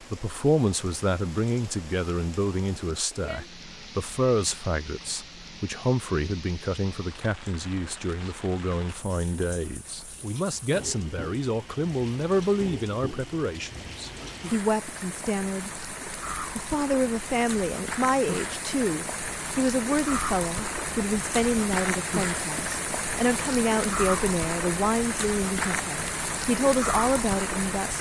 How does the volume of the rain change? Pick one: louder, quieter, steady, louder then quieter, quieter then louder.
louder.